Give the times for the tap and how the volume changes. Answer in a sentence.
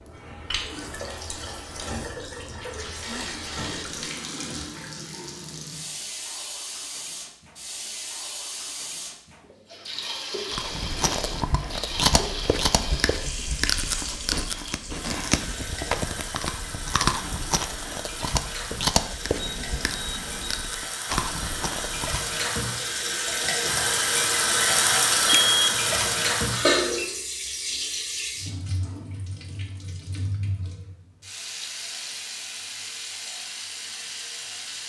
You can hear the tap from 0.0 to 34.8 s, getting louder then quieter.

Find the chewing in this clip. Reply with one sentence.
The chewing can be heard from 10.5 to 22.4 s.